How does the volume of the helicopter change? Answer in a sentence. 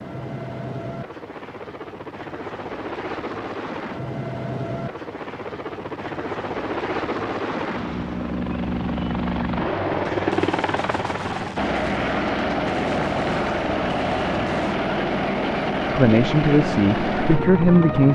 The volume of the helicopter goes up.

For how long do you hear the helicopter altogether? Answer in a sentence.
You can hear the helicopter for 18 seconds altogether.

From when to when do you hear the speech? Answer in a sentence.
You can hear the speech from 15.9 to 18.1 s.